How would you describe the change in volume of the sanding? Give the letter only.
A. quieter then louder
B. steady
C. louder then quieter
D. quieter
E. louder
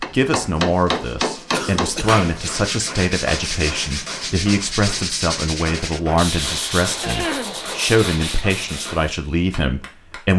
E.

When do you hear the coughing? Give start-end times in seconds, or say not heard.
1.5-2.6, 7.0-7.6.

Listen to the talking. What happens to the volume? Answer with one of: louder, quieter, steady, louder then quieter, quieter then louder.
steady.